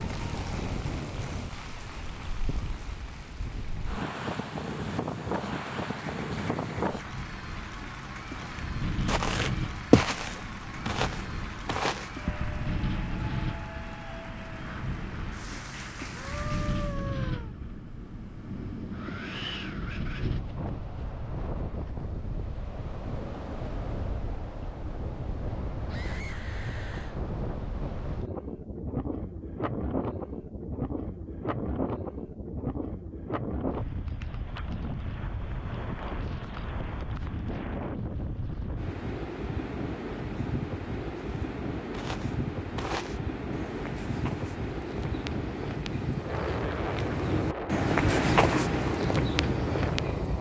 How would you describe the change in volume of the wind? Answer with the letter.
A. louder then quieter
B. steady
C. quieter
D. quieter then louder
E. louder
B.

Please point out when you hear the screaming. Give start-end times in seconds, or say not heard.
16.1-17.6, 25.9-27.2.